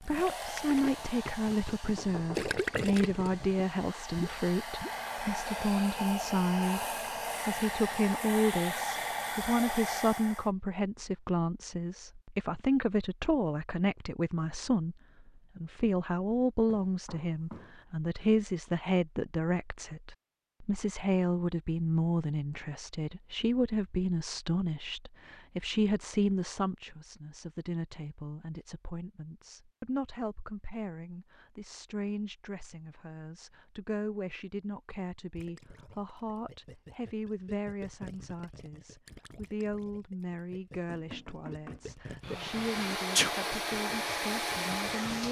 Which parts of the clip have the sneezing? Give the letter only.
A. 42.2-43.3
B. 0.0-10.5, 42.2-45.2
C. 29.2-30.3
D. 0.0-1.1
A.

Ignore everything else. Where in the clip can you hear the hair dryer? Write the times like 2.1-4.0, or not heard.
0.0-10.5, 42.2-45.2.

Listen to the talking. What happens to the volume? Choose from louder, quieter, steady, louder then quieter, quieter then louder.
quieter.